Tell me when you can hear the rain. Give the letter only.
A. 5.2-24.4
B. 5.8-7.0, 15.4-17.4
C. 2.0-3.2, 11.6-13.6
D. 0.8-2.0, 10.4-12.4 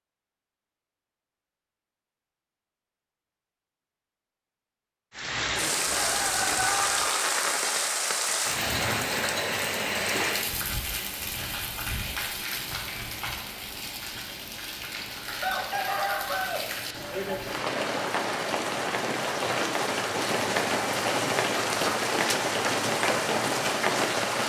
A.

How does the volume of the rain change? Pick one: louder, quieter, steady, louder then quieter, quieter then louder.
quieter then louder.